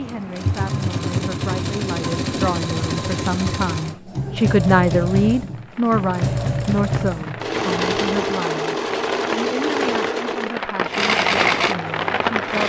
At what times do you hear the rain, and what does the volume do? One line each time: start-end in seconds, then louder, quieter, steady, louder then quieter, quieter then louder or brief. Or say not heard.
5.5-12.6 louder.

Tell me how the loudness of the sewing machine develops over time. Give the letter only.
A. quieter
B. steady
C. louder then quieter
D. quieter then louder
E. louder
B.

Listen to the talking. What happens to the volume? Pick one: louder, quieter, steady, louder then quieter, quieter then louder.
louder then quieter.